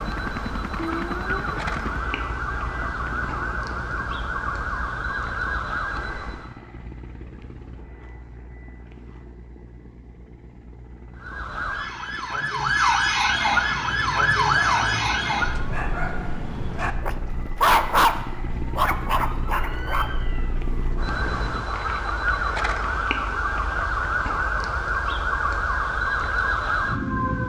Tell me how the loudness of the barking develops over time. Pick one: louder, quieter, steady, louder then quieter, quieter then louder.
louder then quieter.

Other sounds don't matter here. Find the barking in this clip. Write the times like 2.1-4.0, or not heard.
13.7-20.1.